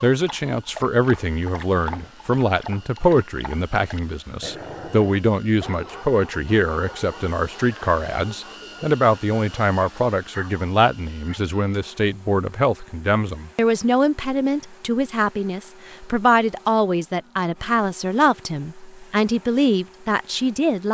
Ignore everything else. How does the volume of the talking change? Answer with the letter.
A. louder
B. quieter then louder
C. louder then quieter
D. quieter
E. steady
E.